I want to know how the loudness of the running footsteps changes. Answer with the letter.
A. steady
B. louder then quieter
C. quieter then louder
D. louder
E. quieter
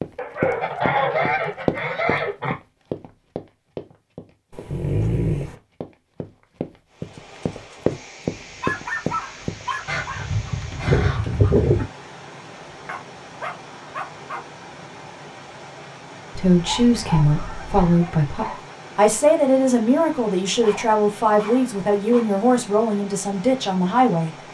C.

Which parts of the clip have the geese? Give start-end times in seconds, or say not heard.
0.5-2.5, 9.8-11.8, 16.4-17.9.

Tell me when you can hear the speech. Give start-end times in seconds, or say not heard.
16.4-24.4.